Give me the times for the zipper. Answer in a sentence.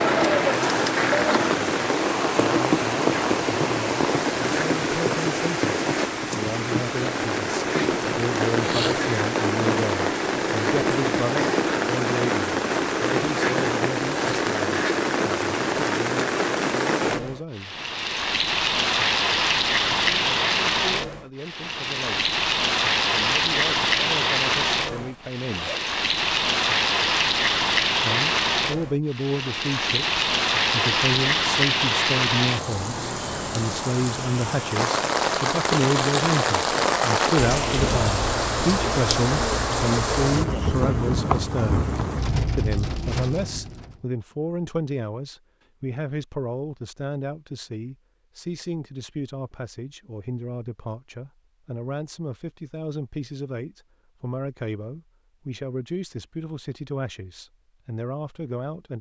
The zipper can be heard from 24.8 to 25.9 s.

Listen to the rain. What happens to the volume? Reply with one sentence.
The volume of the rain stays about the same.